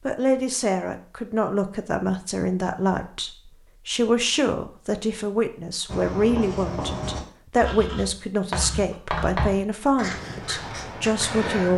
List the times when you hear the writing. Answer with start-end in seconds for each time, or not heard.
5.8-11.7.